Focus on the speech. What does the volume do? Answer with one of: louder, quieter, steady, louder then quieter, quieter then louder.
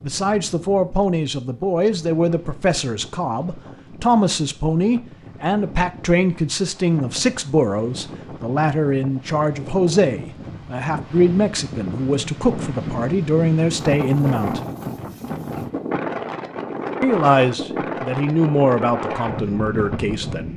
steady.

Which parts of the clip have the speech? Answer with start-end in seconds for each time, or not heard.
0.0-14.6, 17.0-20.5.